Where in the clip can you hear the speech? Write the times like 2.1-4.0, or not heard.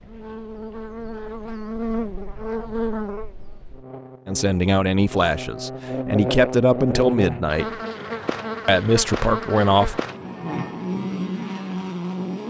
4.2-7.8, 8.7-10.0.